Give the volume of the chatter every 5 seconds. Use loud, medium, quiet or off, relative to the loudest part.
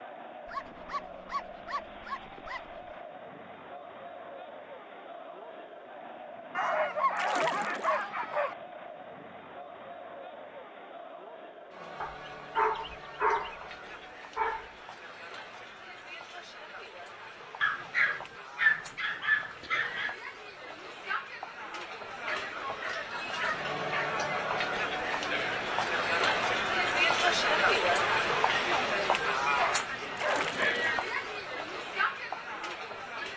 quiet, quiet, quiet, quiet, medium, loud, medium.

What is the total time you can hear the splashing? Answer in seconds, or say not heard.
2 s.